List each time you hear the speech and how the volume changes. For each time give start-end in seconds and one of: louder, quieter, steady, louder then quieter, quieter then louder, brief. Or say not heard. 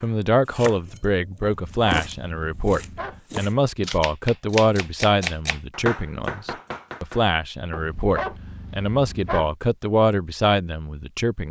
0.0-11.4 steady.